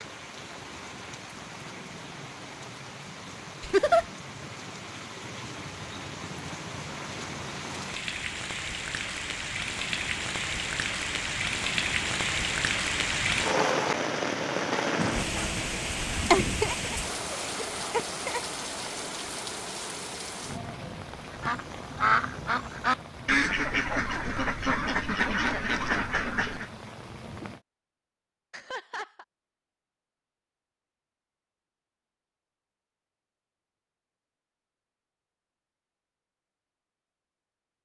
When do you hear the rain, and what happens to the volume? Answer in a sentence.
The rain can be heard from 0.0 to 27.6 s, getting louder then quieter.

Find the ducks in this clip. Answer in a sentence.
The ducks can be heard from 21.3 to 26.7 s.